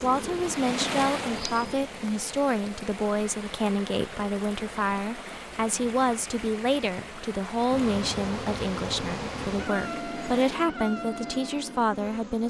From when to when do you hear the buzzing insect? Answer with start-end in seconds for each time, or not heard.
0.0-1.8, 7.7-12.4.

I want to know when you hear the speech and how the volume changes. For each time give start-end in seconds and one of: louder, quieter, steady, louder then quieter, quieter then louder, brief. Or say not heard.
0.0-12.4 steady.